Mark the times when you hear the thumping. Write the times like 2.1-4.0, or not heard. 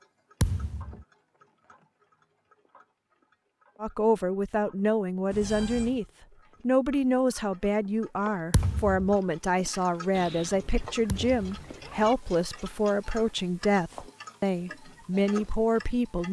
0.4-1.0, 8.5-9.2, 11.1-11.5.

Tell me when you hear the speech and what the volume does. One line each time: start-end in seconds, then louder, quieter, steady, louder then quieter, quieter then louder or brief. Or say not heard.
3.8-16.2 steady.